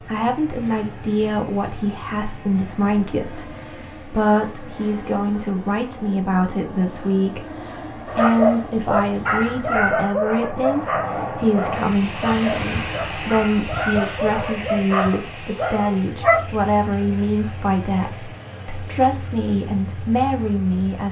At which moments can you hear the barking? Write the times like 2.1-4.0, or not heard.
8.1-16.5.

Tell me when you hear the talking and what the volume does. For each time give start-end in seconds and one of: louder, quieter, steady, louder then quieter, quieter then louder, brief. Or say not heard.
0.0-21.0 steady.